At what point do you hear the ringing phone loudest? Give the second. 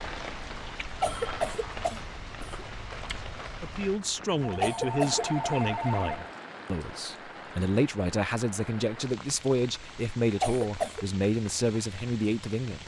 6 s.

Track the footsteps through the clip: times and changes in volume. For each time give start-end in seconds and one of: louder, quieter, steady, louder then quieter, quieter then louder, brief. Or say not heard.
not heard.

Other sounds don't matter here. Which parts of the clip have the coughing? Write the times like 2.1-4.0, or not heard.
1.0-2.6, 4.6-5.2, 10.4-11.1.